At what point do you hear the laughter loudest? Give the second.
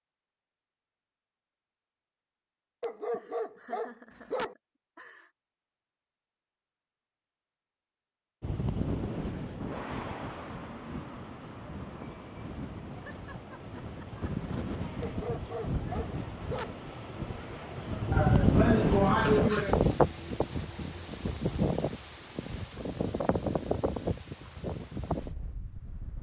19 s.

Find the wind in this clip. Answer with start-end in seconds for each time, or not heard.
8.4-26.1.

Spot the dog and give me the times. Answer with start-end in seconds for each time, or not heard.
2.8-4.5, 15.0-16.8.